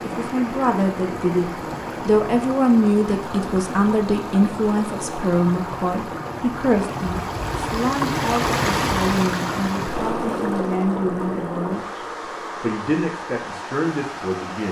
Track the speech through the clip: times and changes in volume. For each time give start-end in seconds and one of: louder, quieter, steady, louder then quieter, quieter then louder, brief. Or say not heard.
0.0-14.6 quieter.